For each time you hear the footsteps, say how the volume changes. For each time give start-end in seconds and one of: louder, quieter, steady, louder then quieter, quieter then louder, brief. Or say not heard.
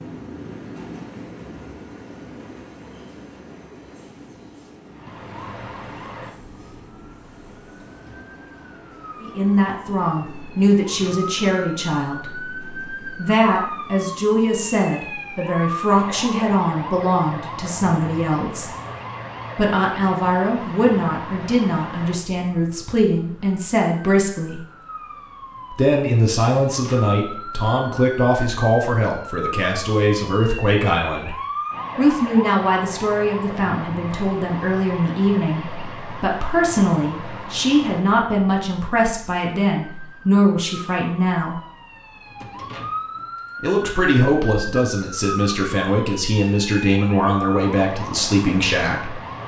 not heard.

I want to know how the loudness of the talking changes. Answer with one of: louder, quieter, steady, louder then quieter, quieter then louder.
steady.